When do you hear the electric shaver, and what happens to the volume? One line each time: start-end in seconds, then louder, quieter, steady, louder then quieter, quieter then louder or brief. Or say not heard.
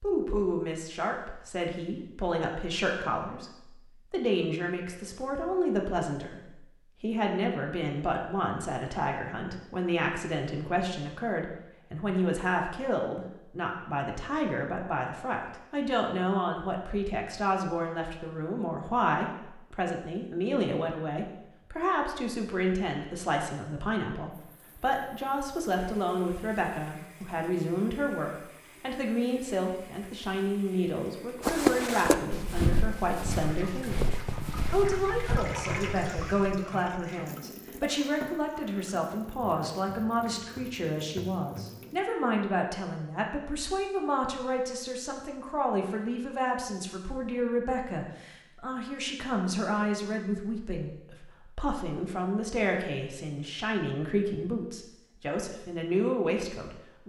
not heard.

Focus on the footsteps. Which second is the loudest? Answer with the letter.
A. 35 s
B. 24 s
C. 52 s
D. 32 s
D.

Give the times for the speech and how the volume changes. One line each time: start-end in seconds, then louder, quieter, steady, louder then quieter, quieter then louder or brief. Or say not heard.
0.0-34.1 steady
34.7-57.0 steady.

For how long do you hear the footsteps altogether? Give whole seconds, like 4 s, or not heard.
5 s.